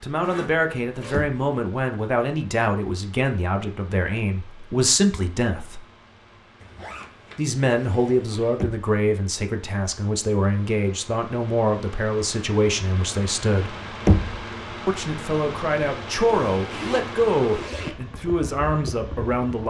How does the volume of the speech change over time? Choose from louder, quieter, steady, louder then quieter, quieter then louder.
steady.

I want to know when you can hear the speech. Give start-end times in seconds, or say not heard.
0.0-5.8, 7.3-13.8, 14.8-19.6.